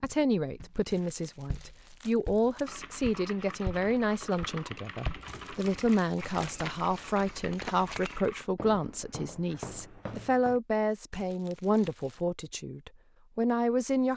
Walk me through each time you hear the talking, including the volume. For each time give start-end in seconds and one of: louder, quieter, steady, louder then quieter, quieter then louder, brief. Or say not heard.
0.0-14.1 steady.